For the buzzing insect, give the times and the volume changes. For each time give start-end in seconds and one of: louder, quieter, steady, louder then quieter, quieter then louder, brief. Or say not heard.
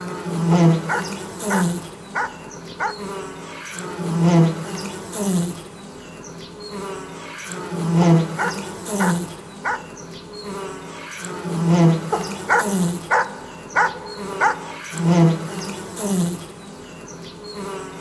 0.0-17.9 steady.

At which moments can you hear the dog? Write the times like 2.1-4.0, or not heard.
0.7-3.0, 8.2-9.9, 12.1-14.8.